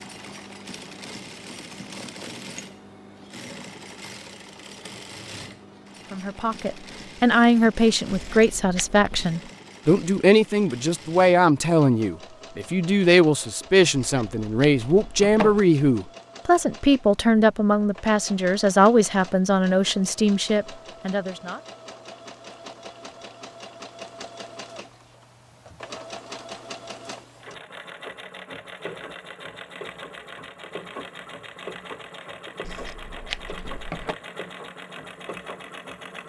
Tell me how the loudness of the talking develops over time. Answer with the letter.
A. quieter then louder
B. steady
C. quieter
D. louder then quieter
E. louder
B.